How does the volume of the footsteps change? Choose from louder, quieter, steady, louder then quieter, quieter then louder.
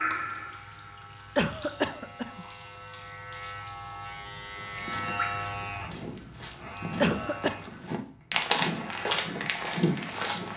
louder.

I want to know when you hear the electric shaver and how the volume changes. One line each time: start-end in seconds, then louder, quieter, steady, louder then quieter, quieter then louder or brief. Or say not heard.
0.0-10.5 louder then quieter.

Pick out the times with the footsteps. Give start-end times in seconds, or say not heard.
4.5-10.5.